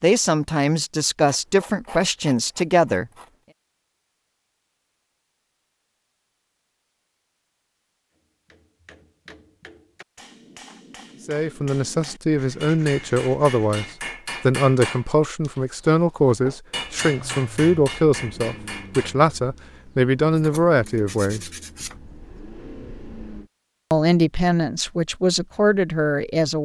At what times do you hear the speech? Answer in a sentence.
The speech can be heard from 0.0 to 3.0 s, from 11.2 to 21.5 s and from 23.9 to 26.5 s.